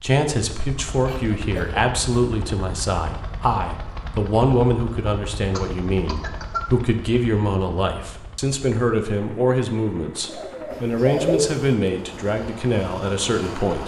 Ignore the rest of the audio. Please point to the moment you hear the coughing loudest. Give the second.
11 s.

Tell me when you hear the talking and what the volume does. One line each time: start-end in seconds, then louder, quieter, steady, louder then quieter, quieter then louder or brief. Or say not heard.
0.0-13.8 steady.